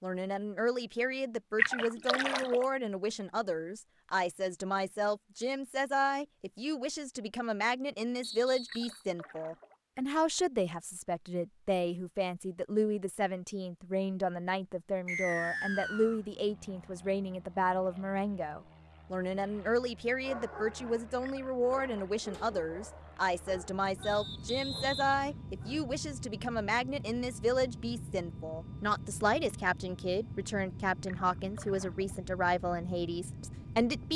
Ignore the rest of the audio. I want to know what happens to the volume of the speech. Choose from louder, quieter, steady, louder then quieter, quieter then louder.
steady.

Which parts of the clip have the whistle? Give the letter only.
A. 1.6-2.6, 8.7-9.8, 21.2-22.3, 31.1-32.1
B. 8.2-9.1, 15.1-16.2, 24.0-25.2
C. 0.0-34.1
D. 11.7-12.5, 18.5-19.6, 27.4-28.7
B.